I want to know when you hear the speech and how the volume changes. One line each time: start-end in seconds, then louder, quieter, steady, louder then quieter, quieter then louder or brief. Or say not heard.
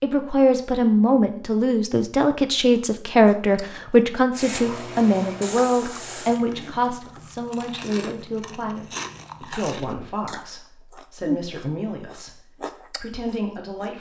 0.0-13.9 quieter.